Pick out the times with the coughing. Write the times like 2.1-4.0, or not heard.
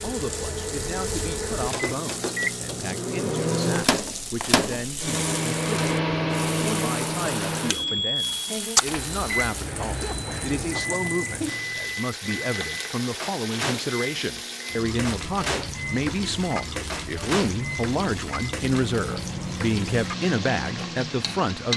9.9-11.1.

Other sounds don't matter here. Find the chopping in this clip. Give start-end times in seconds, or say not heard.
not heard.